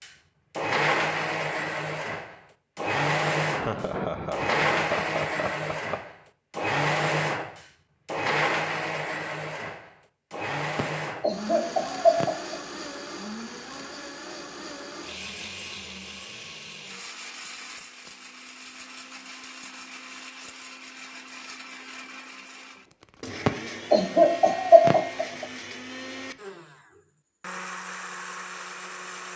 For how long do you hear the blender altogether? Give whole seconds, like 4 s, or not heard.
29 s.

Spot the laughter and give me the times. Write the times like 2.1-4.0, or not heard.
3.5-6.1, 10.8-12.6, 23.4-25.4.